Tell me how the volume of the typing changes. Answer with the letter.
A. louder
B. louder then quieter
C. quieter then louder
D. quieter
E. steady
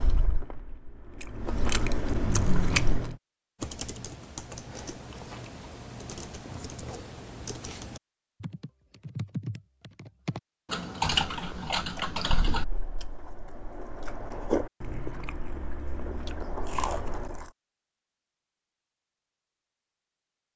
A.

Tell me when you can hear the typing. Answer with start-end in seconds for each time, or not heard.
3.6-12.7.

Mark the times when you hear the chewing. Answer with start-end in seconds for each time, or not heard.
0.0-3.1, 11.3-17.5.